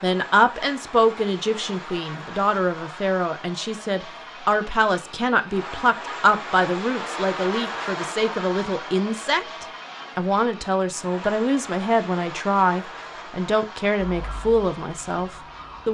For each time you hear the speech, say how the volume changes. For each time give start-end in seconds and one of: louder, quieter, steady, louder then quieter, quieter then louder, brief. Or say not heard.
0.0-15.8 steady.